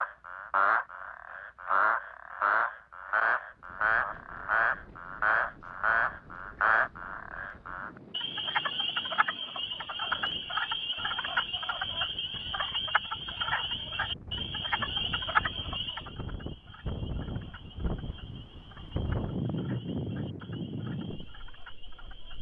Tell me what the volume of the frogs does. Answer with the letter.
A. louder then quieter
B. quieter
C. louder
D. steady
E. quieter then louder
B.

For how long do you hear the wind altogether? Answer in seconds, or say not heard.
19 s.